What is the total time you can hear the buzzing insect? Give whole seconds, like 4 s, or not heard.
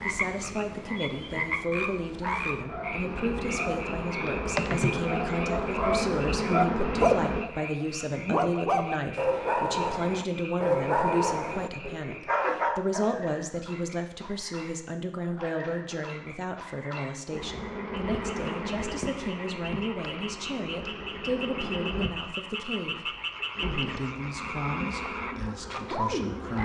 15 s.